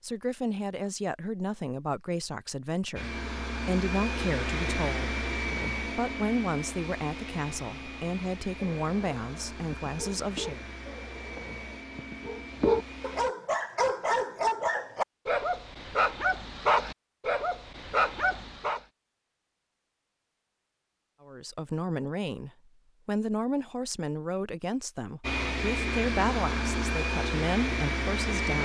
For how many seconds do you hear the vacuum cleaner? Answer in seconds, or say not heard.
14 s.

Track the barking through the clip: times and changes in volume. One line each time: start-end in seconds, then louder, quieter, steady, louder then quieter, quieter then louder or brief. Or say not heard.
8.6-18.8 louder.